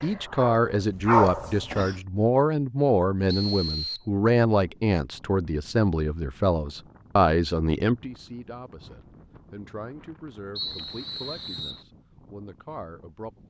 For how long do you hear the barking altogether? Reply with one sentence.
You can hear the barking for 2 seconds altogether.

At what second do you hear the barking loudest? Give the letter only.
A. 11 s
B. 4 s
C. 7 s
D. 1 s
D.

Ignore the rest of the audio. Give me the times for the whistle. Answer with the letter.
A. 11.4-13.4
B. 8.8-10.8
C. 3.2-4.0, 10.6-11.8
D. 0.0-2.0
C.